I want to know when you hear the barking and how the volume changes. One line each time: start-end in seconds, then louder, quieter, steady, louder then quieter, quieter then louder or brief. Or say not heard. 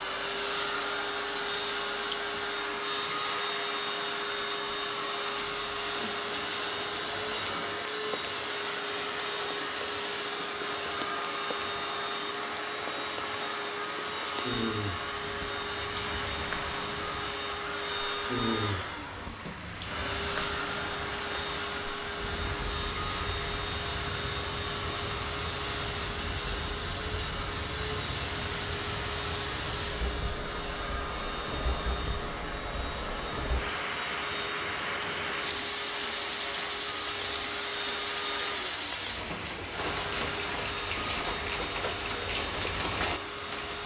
not heard.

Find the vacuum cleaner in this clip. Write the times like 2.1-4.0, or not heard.
0.0-43.8.